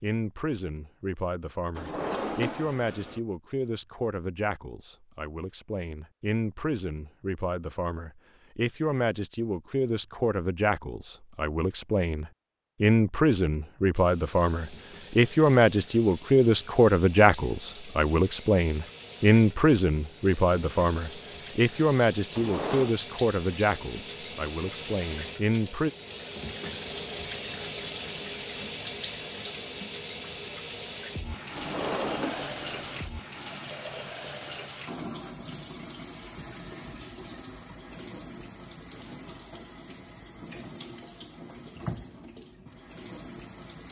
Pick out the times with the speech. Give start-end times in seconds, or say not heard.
0.0-25.9.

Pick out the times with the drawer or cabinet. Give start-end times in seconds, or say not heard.
1.8-3.2, 22.3-22.9, 31.6-33.0.